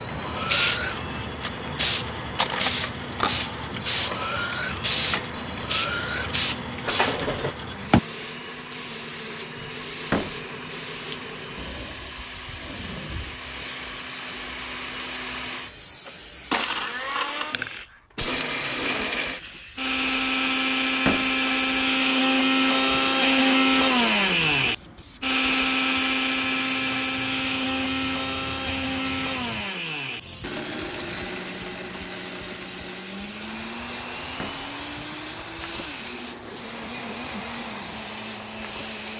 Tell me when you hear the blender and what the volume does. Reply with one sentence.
The blender can be heard from 0.0 to 39.1 s, getting louder then quieter.